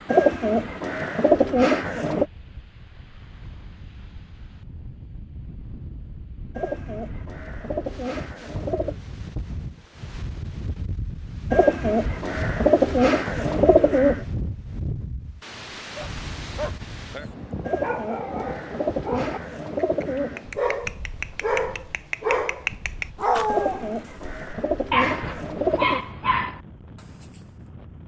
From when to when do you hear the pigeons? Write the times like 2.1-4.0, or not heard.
0.1-2.2, 6.5-8.9, 11.5-14.2, 17.6-20.4, 23.4-26.0.